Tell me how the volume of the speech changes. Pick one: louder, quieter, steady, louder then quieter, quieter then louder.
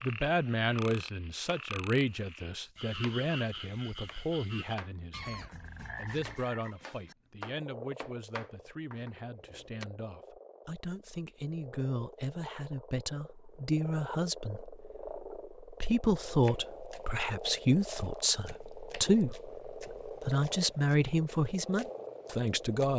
quieter then louder.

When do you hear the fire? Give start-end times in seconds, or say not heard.
not heard.